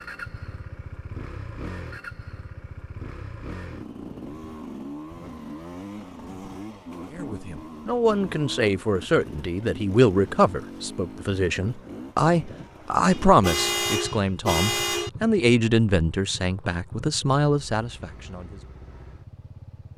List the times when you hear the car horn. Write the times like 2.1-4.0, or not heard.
13.1-15.1.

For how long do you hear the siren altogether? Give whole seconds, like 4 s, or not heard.
not heard.